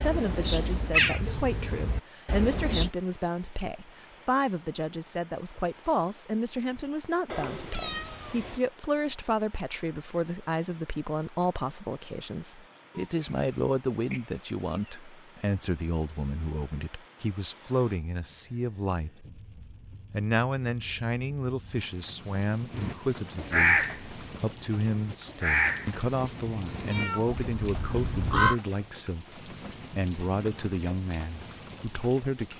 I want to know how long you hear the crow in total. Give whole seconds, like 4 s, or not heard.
9 s.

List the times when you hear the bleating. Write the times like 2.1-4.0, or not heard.
not heard.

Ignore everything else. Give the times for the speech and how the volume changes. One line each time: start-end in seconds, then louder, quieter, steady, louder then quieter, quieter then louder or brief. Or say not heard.
0.0-32.5 steady.